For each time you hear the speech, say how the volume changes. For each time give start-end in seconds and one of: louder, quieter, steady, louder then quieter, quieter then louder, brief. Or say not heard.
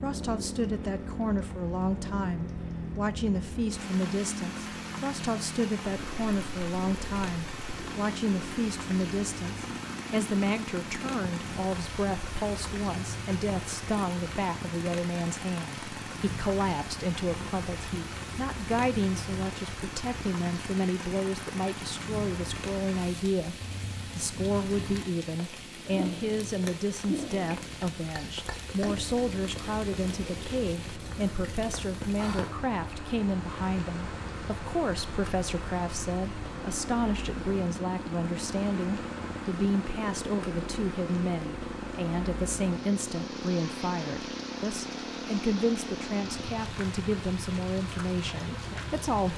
0.0-23.6 steady
24.1-49.3 steady.